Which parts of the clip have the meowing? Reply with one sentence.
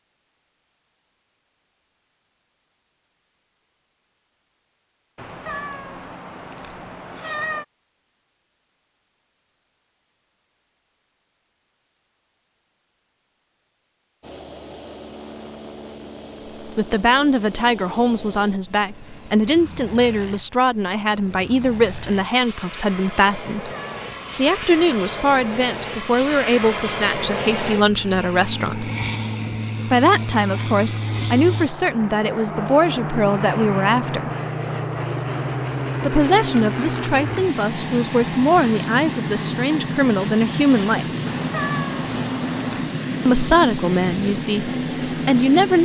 The meowing can be heard from 5.2 to 7.7 s, from 23.6 to 24.5 s and from 41.2 to 43.0 s.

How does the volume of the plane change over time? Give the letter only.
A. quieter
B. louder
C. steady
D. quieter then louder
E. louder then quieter
B.